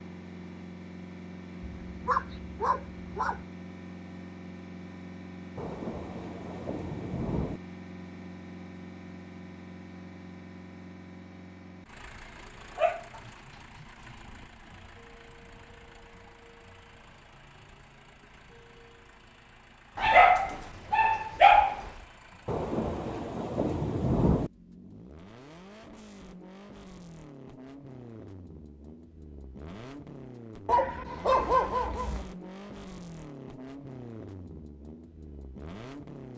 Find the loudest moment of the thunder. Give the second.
24 s.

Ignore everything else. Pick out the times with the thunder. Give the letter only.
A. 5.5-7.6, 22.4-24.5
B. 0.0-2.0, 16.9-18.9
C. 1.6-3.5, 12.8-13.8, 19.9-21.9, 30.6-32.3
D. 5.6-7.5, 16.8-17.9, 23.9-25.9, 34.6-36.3
A.